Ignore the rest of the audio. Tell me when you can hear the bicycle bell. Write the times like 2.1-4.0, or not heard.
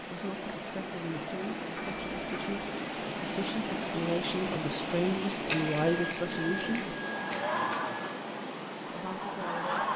1.8-2.6, 5.5-8.2.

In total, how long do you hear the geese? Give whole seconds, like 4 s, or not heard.
3 s.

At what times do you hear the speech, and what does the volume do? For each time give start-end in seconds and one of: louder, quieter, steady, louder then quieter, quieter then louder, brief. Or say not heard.
0.0-7.0 louder
8.8-9.7 brief.